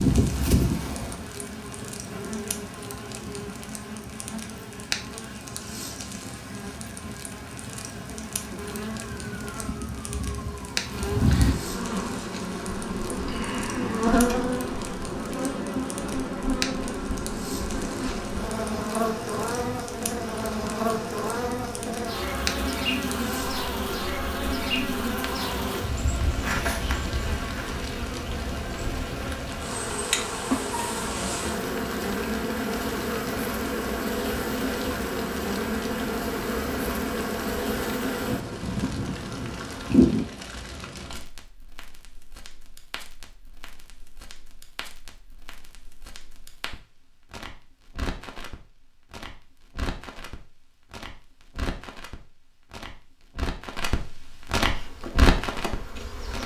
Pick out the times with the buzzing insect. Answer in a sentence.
The buzzing insect can be heard from 0.0 to 40.2 s and from 54.7 to 56.4 s.